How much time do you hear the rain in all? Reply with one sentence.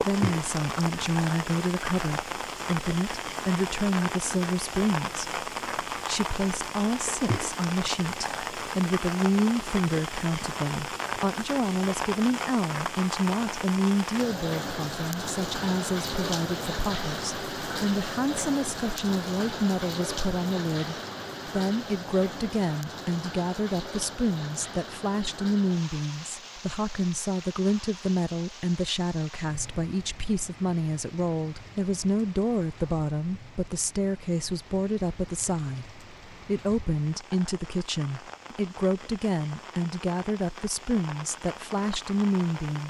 The rain can be heard for 43 seconds in total.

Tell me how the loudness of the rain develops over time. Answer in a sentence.
The loudness of the rain goes down.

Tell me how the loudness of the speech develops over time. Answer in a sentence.
The loudness of the speech stays about the same.